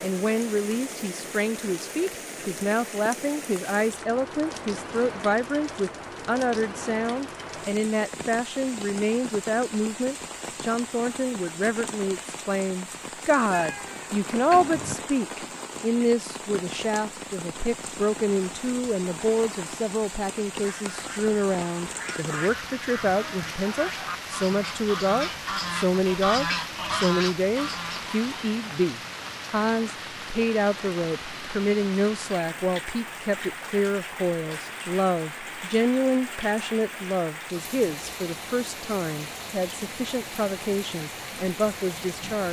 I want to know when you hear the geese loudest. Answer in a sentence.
The volume of the geese peaks at 26 seconds.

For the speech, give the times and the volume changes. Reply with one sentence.
The speech can be heard from 0.0 to 42.4 s, at a steady volume.